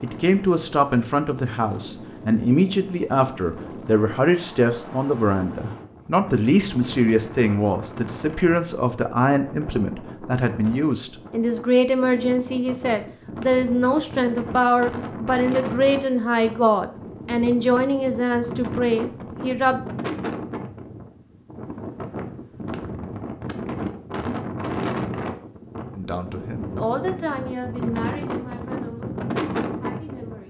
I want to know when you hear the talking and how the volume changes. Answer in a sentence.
You can hear the talking from 0.0 to 19.8 s, at a steady volume; and from 25.9 to 30.4 s, getting quieter.